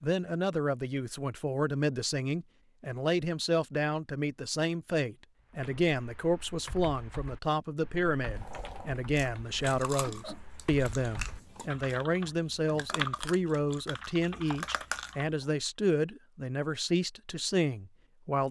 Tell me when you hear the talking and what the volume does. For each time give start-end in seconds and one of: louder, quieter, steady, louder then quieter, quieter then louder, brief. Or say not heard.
0.0-18.4 steady.